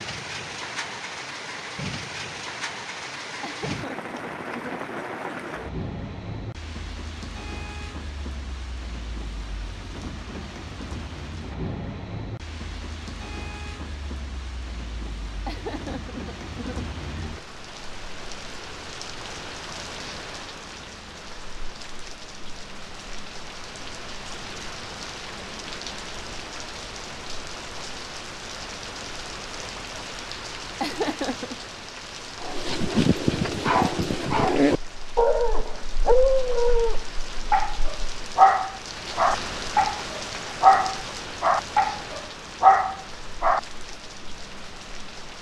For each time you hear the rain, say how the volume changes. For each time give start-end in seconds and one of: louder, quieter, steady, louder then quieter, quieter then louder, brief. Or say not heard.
0.0-45.3 steady.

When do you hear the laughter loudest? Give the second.
31 s.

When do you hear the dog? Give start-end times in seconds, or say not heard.
32.4-43.6.